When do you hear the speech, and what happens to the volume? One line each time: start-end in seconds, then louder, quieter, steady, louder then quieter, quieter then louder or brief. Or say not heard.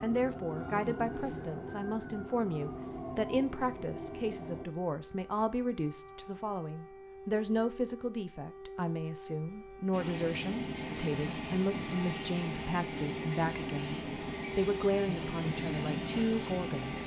0.0-17.0 steady.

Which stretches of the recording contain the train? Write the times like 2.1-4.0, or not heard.
0.0-4.7, 9.9-17.0.